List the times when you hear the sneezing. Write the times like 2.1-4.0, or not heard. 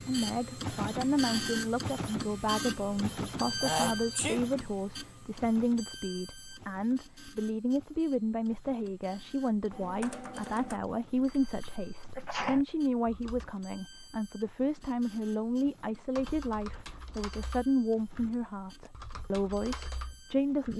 3.6-4.4, 12.2-12.6.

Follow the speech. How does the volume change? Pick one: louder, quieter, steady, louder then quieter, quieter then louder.
steady.